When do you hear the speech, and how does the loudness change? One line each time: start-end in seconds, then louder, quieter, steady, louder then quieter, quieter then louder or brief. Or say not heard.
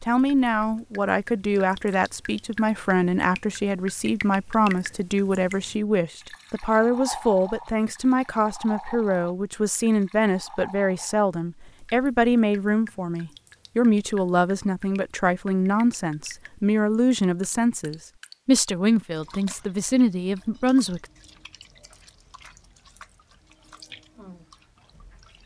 0.0-21.1 steady.